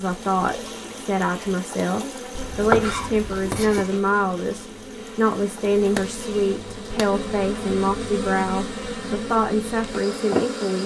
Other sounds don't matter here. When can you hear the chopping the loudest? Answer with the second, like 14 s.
3 s.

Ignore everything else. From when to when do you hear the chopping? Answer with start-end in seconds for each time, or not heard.
2.4-3.9, 5.9-7.1.